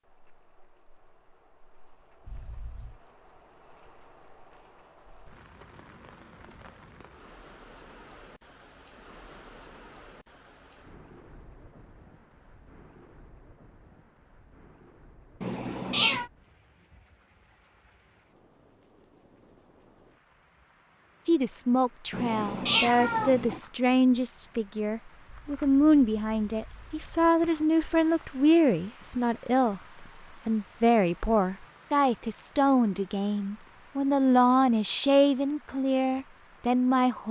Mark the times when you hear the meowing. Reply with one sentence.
You can hear the meowing from 15.4 to 16.3 s and from 22.1 to 23.6 s.